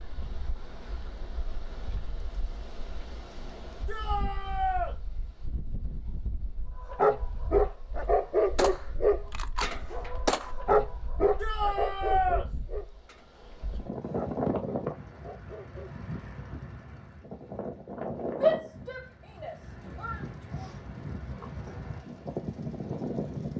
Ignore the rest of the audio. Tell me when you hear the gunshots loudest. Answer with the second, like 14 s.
10 s.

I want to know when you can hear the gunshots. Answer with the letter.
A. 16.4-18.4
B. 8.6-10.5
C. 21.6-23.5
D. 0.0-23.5
B.